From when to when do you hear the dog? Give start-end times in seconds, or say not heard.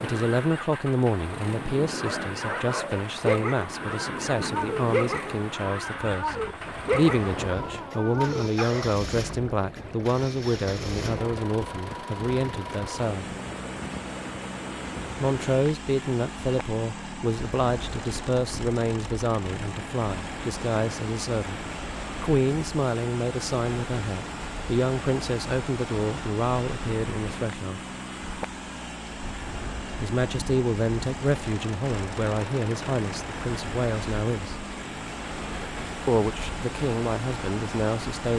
1.9-8.9.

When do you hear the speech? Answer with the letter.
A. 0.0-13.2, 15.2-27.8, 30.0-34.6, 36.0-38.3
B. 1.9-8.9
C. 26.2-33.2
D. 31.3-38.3
A.